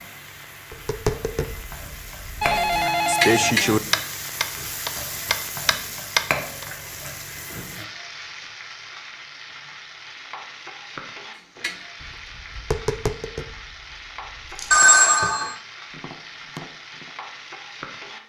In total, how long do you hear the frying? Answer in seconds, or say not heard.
18 s.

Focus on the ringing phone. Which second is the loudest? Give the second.
15 s.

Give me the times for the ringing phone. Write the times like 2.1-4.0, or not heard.
2.4-3.8, 14.7-15.6.